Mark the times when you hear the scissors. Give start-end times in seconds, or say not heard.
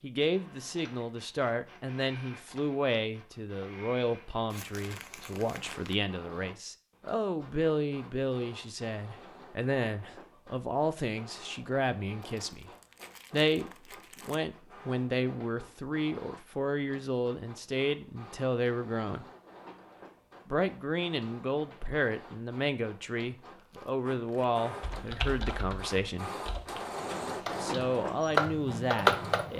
not heard.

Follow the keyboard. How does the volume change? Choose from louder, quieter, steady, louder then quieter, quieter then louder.
quieter then louder.